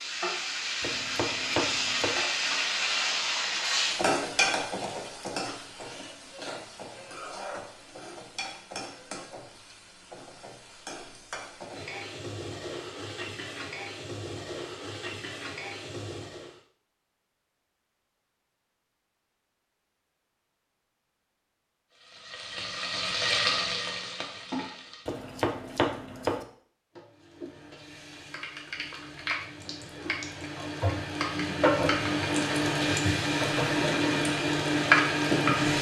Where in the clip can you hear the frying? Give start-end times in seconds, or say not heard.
0.0-16.6, 21.9-25.2, 26.9-35.7.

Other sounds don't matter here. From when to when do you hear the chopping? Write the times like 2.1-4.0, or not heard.
0.8-2.2, 25.1-26.4.